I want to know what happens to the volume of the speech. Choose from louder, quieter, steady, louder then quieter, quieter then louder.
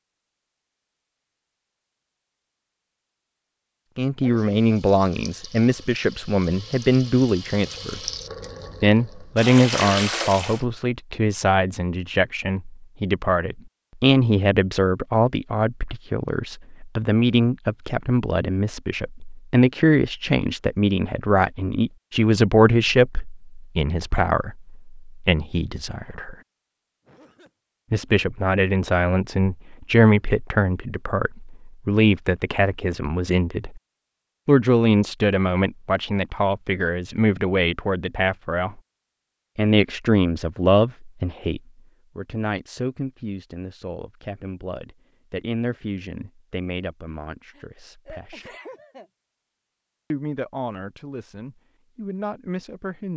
quieter.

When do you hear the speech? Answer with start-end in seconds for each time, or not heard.
4.0-8.0, 8.8-26.4, 27.9-33.8, 34.5-38.8, 39.5-48.5, 50.1-53.1.